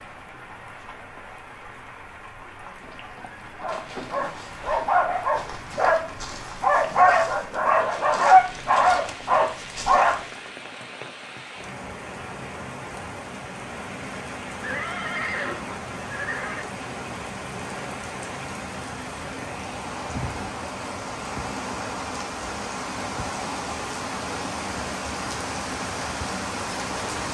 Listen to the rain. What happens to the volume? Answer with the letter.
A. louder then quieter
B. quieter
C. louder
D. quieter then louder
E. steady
C.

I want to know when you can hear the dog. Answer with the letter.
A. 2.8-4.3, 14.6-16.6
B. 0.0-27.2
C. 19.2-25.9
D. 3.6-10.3
D.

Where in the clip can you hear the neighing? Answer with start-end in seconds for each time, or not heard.
2.8-4.3, 14.6-16.6.